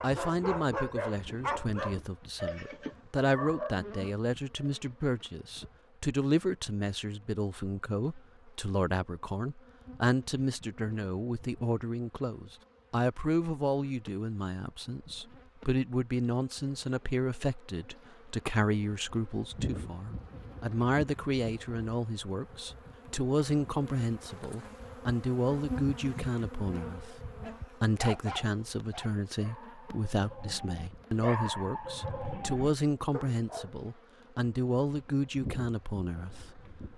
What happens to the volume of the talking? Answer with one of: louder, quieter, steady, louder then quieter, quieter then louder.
steady.